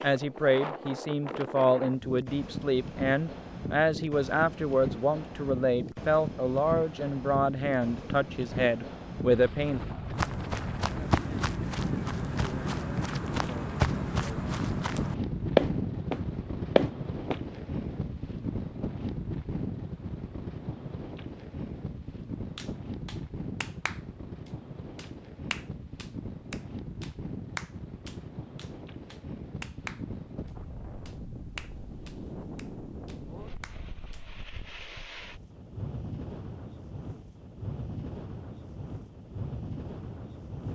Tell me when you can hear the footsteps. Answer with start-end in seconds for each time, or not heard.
10.2-17.4.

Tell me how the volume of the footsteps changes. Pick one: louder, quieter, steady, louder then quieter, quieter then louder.
louder.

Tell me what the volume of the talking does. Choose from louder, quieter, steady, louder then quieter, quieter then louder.
steady.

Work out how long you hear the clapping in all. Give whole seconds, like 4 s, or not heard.
10 s.